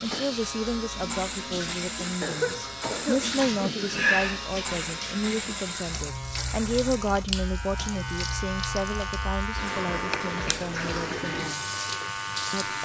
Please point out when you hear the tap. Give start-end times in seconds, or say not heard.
0.0-12.8.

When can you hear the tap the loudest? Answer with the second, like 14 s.
4 s.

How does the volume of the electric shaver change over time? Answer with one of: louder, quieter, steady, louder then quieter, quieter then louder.
steady.